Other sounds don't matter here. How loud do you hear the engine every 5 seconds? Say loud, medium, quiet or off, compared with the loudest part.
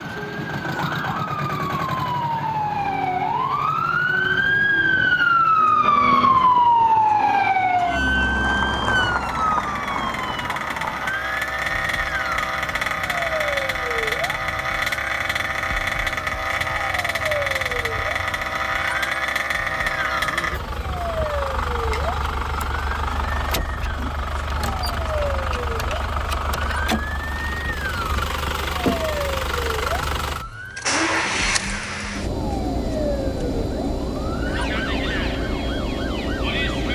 medium, quiet, loud, loud, loud, loud, loud, loud.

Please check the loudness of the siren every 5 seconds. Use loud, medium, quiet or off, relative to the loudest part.
medium, loud, quiet, quiet, quiet, quiet, quiet, quiet.